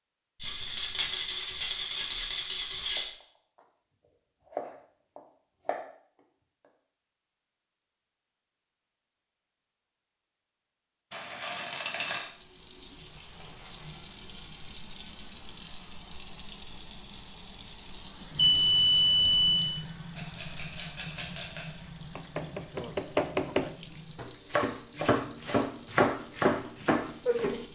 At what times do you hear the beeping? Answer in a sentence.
The beeping can be heard from 18.4 to 19.8 s.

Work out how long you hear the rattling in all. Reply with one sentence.
The rattling can be heard for 6 seconds in total.